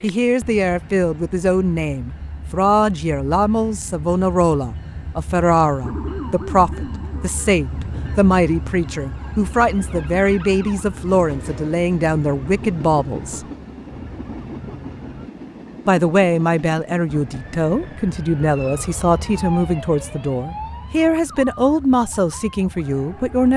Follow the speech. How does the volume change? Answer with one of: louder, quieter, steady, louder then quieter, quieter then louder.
steady.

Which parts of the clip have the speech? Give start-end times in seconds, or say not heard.
0.0-13.4, 15.8-23.5.